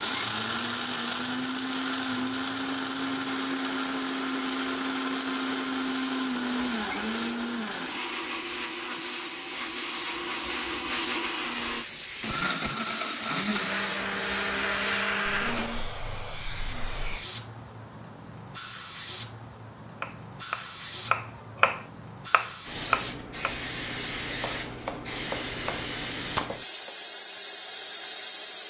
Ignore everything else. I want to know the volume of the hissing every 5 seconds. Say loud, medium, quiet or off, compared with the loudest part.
medium, medium, loud, loud, loud, loud.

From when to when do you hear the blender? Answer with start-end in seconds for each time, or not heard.
0.0-15.9.